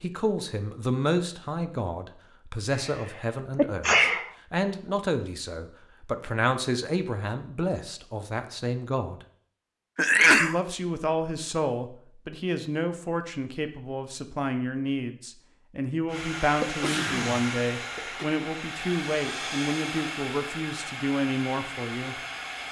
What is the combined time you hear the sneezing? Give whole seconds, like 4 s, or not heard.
4 s.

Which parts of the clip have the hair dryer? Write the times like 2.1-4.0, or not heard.
16.1-22.6.